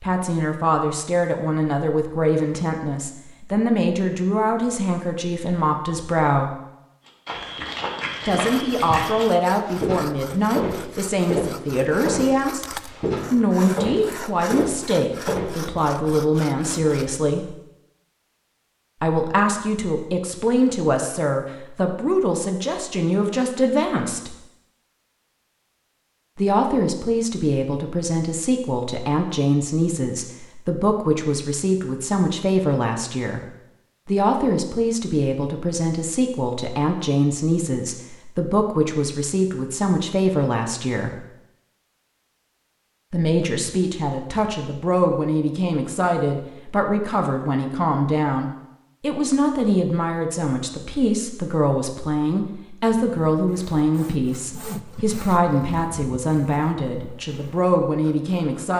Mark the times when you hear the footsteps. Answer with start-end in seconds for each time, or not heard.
7.0-15.7.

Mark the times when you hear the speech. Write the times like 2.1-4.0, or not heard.
0.0-6.5, 8.2-12.7, 13.3-17.5, 19.0-24.4, 26.4-41.2, 43.1-58.7.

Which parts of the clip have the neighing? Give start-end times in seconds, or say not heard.
not heard.